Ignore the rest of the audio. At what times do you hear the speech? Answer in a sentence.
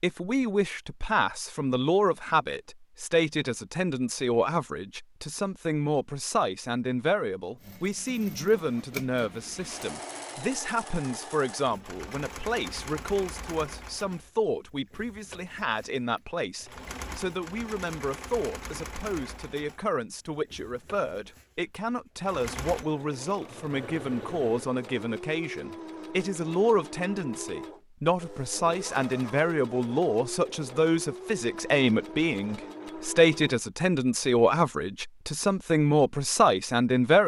You can hear the speech from 0.0 to 37.2 s.